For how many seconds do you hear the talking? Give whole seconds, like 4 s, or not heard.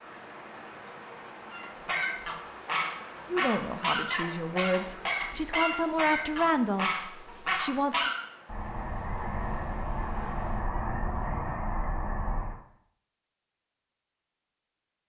5 s.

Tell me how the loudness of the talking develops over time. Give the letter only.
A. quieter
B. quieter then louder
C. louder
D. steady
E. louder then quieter
E.